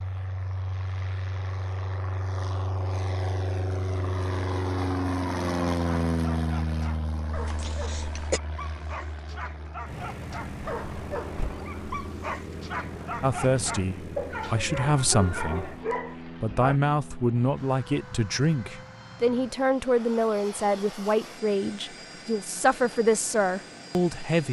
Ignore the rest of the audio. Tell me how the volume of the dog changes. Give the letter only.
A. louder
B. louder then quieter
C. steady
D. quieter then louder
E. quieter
A.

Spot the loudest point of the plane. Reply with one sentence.
The volume of the plane peaks at 6 seconds.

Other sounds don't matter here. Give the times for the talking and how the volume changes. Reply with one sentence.
You can hear the talking from 13.2 to 24.4 s, at a steady volume.